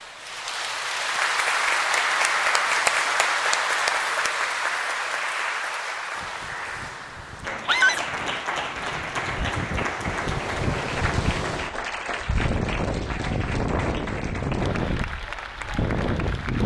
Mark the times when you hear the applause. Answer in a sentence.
The applause can be heard from 0.0 to 16.6 s.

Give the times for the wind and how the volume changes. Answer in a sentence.
You can hear the wind from 6.2 to 16.6 s, getting louder.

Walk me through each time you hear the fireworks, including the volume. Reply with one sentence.
You can't hear the fireworks here.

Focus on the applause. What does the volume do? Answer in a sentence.
The loudness of the applause goes down.